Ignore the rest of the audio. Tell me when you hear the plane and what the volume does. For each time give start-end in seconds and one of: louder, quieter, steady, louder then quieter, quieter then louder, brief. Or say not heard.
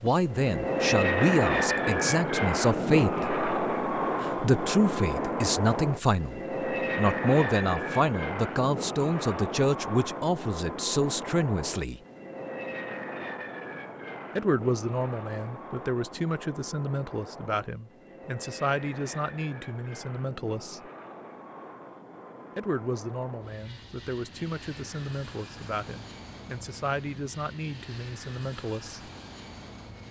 0.1-30.0 quieter.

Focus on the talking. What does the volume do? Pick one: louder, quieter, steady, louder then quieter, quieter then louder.
quieter.